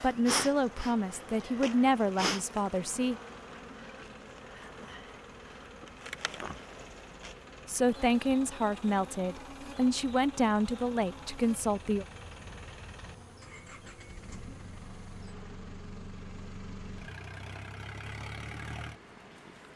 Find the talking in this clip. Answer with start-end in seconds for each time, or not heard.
0.0-3.1, 7.7-12.1.